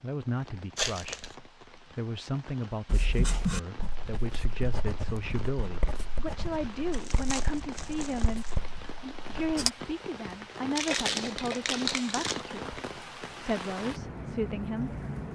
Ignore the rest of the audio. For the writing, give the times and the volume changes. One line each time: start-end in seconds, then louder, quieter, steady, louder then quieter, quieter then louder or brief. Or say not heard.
2.9-9.7 quieter.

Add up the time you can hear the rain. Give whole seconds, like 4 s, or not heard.
15 s.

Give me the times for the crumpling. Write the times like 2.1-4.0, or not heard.
0.8-1.4, 6.9-8.6, 10.8-12.4.